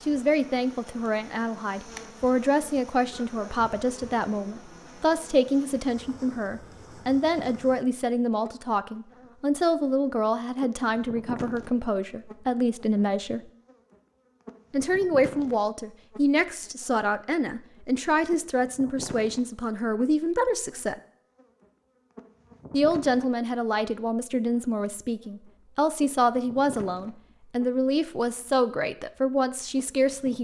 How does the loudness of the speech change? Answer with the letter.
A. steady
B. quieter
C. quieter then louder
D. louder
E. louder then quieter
A.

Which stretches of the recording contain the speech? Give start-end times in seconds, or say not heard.
0.0-13.4, 14.7-20.9, 22.7-30.4.